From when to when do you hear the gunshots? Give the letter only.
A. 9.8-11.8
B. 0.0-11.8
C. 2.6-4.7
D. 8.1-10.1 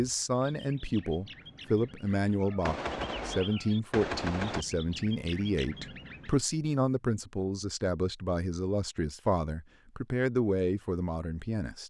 C.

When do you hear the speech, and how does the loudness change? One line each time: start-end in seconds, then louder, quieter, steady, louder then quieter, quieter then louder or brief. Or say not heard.
0.0-11.8 steady.